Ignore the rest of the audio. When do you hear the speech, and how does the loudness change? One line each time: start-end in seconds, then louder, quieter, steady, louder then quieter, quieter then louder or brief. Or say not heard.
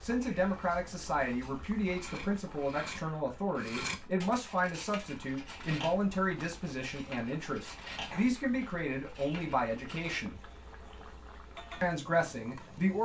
0.0-10.4 steady
11.8-13.0 brief.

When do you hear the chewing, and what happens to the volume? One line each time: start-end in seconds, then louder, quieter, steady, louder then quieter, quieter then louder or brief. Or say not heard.
not heard.